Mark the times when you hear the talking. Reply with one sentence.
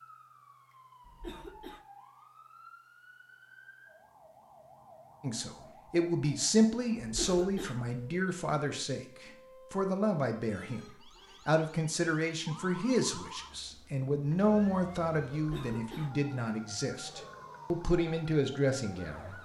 You can hear the talking from 5.2 to 19.4 s.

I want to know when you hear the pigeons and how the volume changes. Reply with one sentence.
You can't hear the pigeons here.